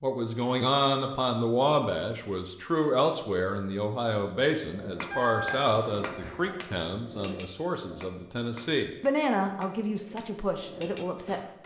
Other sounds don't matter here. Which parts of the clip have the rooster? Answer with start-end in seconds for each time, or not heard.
5.1-6.5.